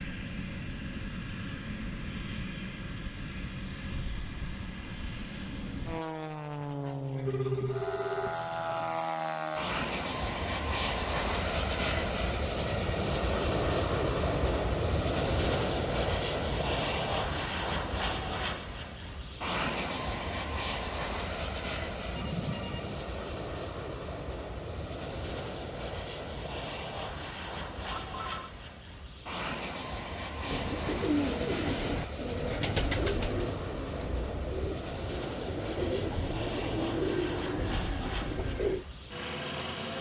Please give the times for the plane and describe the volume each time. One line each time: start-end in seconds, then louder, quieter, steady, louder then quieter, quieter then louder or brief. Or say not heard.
0.0-39.9 louder then quieter.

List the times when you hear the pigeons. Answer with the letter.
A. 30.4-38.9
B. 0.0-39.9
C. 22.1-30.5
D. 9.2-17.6
A.